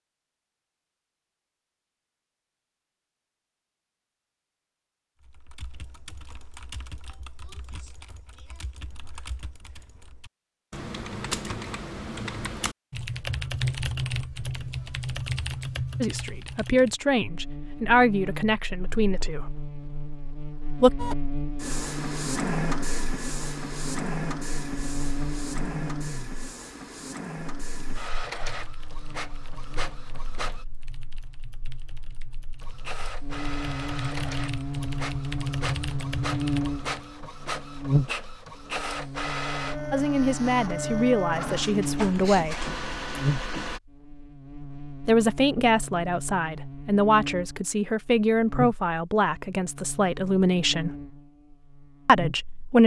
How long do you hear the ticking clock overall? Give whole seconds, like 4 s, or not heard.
not heard.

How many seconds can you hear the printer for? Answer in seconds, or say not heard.
21 s.